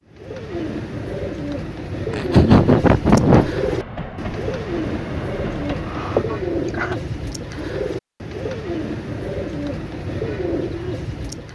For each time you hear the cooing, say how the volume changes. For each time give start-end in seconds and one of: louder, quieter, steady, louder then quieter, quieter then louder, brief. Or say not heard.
0.1-11.5 steady.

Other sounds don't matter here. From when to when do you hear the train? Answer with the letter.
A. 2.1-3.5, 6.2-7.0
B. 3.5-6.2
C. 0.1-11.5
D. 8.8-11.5
B.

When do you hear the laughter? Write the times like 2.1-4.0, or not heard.
2.1-3.5, 6.2-7.0.